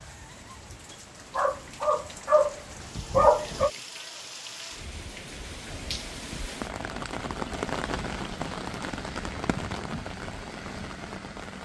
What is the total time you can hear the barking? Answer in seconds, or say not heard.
4 s.